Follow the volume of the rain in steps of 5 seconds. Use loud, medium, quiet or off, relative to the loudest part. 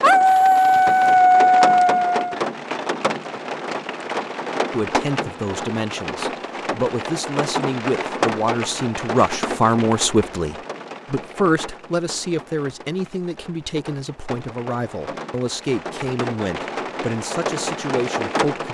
loud, loud, medium, loud.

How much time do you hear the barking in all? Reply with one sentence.
The barking can be heard for 2 seconds in total.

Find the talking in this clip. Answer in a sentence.
You can hear the talking from 4.7 to 18.7 s.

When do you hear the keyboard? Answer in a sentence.
The keyboard can't be heard in this clip.